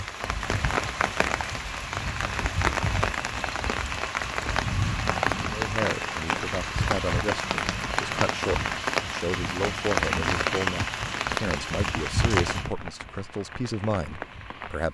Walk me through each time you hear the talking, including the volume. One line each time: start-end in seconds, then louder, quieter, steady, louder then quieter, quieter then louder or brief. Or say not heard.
5.5-14.8 steady.